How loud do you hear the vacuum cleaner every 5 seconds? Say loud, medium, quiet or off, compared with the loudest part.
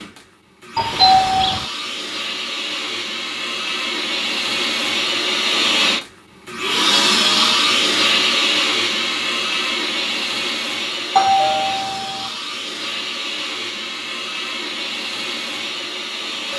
medium, loud, medium, medium.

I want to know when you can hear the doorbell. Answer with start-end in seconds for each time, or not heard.
0.8-1.6, 11.2-12.3.